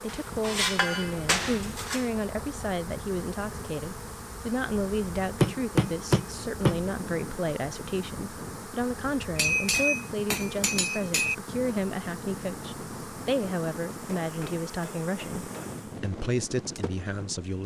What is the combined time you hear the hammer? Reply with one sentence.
You can hear the hammer for 7 seconds altogether.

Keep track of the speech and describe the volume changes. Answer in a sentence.
The volume of the speech stays about the same.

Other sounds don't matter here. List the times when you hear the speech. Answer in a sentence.
You can hear the speech from 0.0 to 17.6 s.